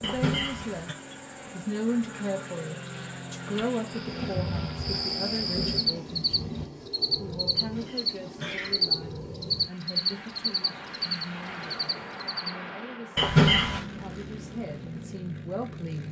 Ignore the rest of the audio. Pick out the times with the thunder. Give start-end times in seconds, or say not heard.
4.0-6.7.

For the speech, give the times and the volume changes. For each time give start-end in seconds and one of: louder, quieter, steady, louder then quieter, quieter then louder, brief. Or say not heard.
0.0-16.0 quieter.